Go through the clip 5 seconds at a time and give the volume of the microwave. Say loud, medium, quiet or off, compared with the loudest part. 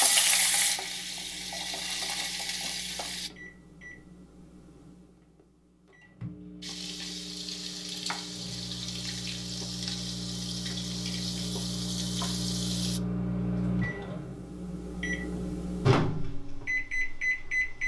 quiet, quiet, loud, loud.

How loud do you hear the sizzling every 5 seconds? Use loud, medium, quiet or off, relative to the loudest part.
loud, medium, medium, off.